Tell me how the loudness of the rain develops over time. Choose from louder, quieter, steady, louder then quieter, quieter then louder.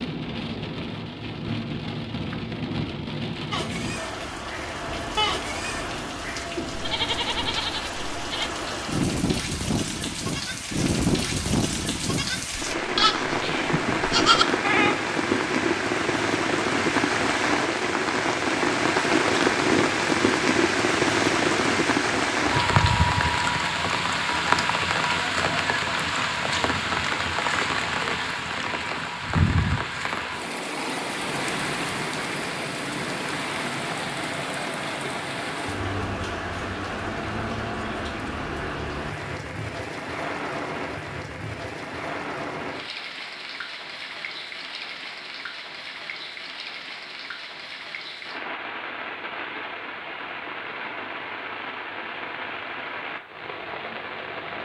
louder then quieter.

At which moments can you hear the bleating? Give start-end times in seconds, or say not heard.
3.5-14.9.